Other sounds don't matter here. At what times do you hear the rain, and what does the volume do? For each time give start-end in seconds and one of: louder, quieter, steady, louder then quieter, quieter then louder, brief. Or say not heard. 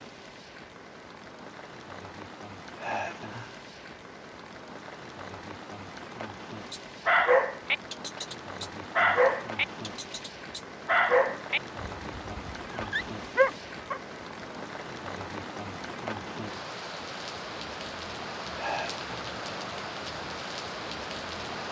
0.0-21.6 louder.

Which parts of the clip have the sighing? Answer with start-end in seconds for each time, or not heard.
2.8-3.6, 18.6-19.2.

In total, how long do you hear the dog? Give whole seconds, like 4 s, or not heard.
7 s.